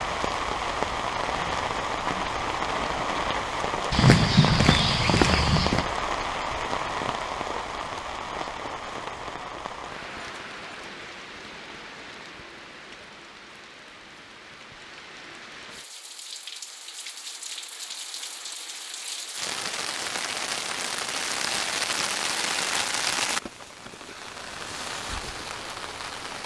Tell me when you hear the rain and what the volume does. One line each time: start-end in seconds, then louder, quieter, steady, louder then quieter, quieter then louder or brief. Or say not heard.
0.0-26.4 quieter then louder.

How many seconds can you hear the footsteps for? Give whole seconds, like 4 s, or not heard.
2 s.